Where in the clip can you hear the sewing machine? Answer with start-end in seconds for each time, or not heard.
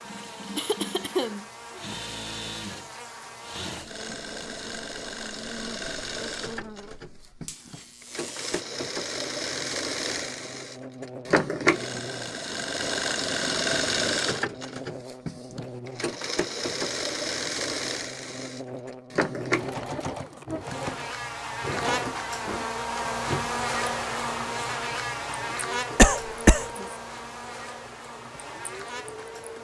0.0-29.5.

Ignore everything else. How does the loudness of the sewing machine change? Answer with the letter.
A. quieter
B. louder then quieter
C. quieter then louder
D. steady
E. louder
B.